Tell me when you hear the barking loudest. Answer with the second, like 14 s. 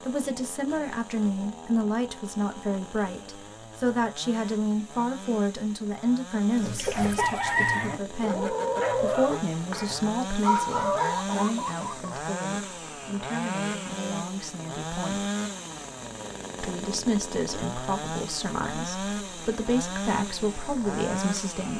11 s.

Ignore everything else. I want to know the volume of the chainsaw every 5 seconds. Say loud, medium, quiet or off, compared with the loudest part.
medium, medium, loud, loud, loud.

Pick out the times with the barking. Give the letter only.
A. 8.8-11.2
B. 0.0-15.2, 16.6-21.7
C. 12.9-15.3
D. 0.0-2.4
A.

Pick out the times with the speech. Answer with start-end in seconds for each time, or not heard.
0.0-15.2, 16.6-21.7.